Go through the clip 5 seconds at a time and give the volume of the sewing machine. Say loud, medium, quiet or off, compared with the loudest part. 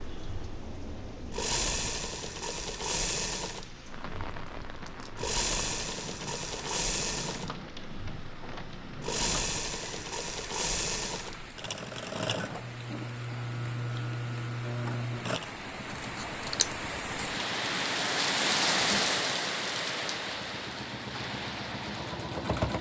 loud, loud, loud, medium, loud.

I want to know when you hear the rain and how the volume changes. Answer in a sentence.
You can hear the rain from 0.0 to 22.7 s, getting louder.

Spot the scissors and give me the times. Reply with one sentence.
You can hear the scissors from 16.0 to 16.7 s.